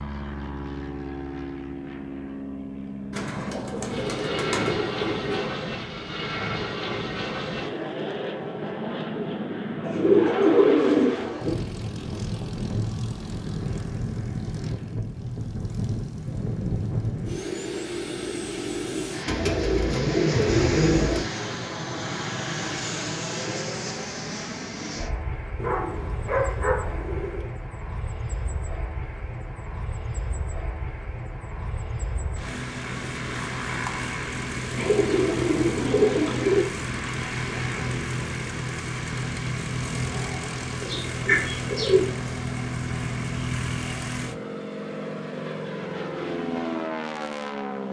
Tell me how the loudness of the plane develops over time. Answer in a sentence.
The loudness of the plane stays about the same.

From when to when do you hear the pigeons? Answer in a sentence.
You can hear the pigeons from 3.1 to 5.5 s, from 9.8 to 11.6 s, from 19.2 to 21.3 s, from 25.6 to 27.5 s, from 34.8 to 36.6 s and from 40.8 to 42.1 s.